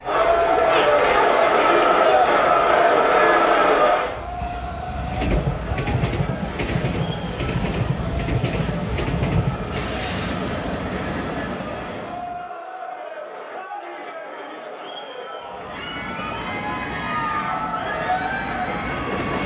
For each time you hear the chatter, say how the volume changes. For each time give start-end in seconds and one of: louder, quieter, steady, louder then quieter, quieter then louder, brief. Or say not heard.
0.0-19.4 quieter then louder.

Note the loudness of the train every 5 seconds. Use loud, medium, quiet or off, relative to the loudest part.
quiet, loud, loud, medium.